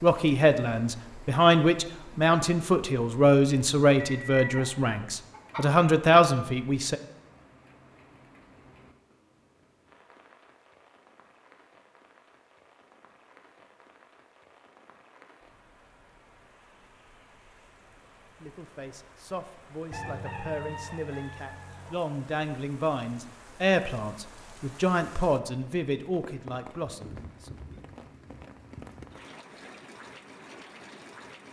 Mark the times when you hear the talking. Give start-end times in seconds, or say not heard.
0.0-7.0, 18.4-27.5.